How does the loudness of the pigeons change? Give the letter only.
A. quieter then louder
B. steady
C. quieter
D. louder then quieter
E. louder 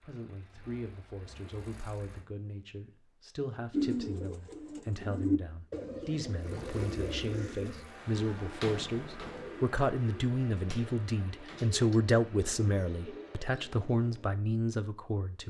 C.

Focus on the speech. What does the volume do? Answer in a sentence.
The volume of the speech goes up.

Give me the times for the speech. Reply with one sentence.
The speech can be heard from 0.0 to 15.4 s.